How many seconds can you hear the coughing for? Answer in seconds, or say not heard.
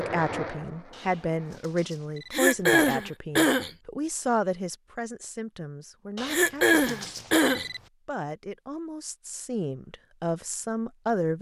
3 s.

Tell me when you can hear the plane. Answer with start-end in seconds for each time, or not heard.
0.0-1.6.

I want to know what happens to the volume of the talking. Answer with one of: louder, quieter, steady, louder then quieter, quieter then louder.
quieter then louder.